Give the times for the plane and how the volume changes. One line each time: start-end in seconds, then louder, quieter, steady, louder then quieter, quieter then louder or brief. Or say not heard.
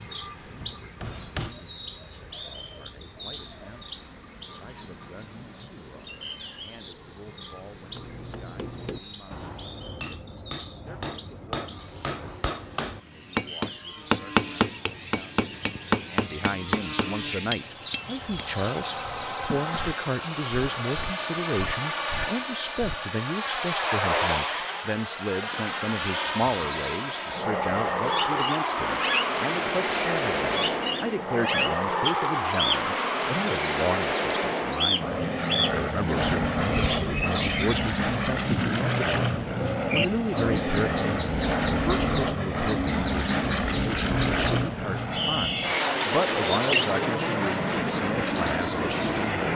0.0-49.5 louder.